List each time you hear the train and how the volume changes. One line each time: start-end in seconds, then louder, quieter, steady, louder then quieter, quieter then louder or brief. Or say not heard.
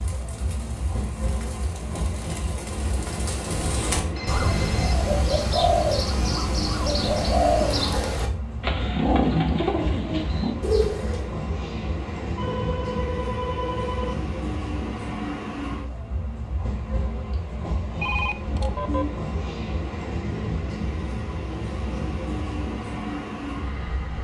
0.0-24.1 steady.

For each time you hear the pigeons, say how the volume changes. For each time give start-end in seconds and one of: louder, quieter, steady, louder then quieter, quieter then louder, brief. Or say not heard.
0.0-11.2 louder.